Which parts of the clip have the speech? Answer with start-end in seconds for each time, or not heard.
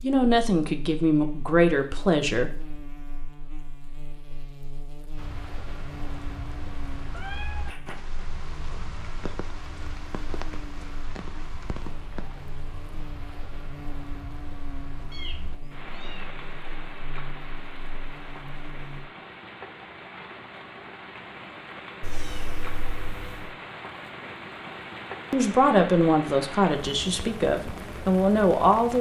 0.0-2.6, 25.3-28.9.